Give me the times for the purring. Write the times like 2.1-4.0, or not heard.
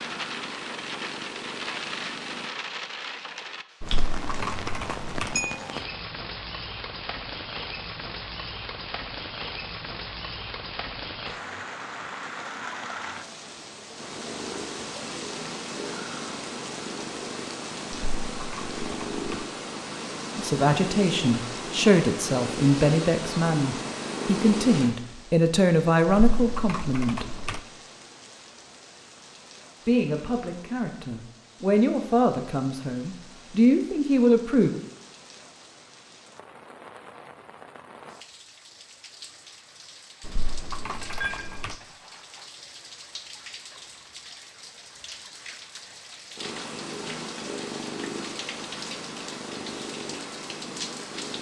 0.0-2.5, 13.9-24.9, 46.4-51.3.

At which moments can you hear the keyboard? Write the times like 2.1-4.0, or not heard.
3.8-5.3, 17.9-19.4, 26.1-27.6, 40.2-41.8.